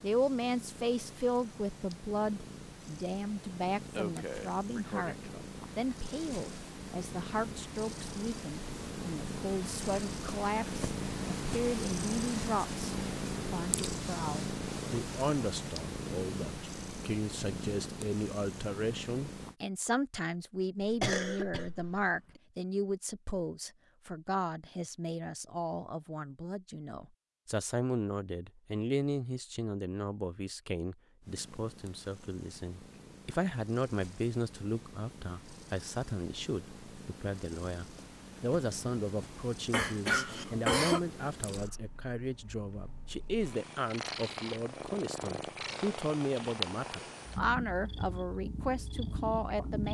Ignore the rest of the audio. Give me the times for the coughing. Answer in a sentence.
The coughing can be heard from 4.0 to 5.4 s, from 20.8 to 22.4 s and from 39.7 to 41.0 s.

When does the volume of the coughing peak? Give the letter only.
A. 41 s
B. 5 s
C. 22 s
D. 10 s
A.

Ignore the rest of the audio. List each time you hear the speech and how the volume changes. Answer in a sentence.
You can hear the speech from 0.0 to 49.8 s, at a steady volume.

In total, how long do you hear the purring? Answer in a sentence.
You can hear the purring for 38 seconds altogether.